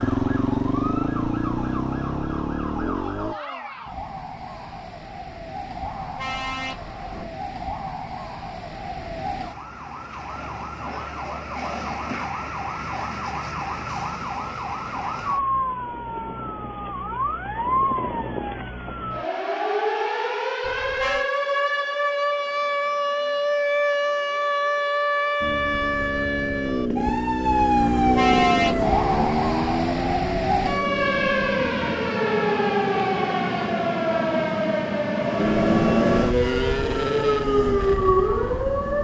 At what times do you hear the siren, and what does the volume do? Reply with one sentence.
The siren can be heard from 0.0 to 39.0 s, getting louder.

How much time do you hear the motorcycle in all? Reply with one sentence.
The motorcycle can be heard for 14 seconds in total.